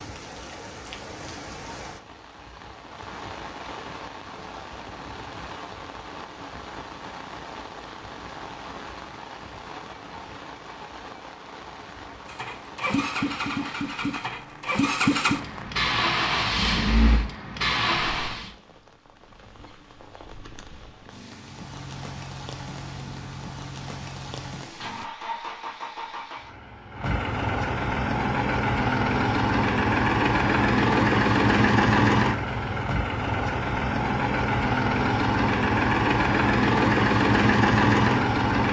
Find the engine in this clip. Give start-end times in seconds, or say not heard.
12.2-18.5, 21.3-38.6.